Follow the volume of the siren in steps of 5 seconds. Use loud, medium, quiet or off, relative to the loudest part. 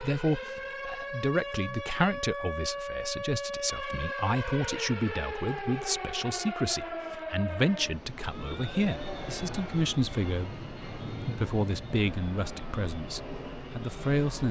loud, loud, quiet.